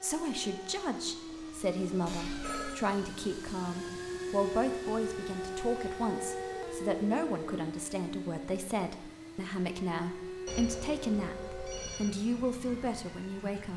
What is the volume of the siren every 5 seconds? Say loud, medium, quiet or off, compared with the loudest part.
loud, loud, medium.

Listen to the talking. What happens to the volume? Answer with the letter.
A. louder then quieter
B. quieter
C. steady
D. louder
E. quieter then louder
C.